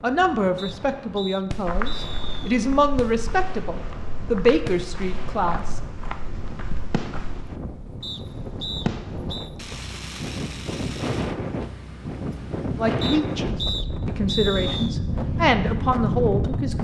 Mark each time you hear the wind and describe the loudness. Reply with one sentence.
The wind can be heard from 0.0 to 16.7 s, getting louder.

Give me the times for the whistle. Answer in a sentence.
The whistle can be heard from 0.6 to 2.6 s, from 8.0 to 9.5 s and from 13.0 to 14.9 s.